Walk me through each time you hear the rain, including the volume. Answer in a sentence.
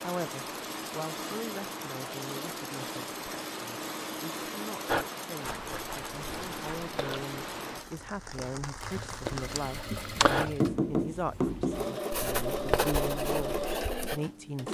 The rain can be heard from 0.0 to 9.7 s, at a steady volume.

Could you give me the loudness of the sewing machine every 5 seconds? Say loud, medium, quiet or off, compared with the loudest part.
medium, medium, loud.